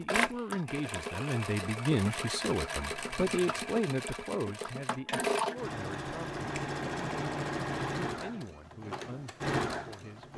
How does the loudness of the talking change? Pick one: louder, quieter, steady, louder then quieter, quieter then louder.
quieter.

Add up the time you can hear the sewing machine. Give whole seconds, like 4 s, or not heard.
10 s.